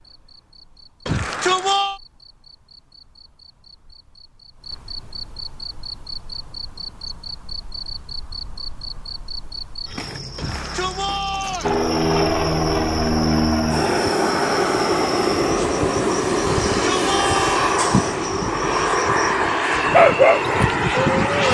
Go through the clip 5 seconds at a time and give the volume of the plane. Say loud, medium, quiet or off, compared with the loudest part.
off, off, loud, loud, loud.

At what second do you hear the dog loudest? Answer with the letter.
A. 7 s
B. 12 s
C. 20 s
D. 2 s
C.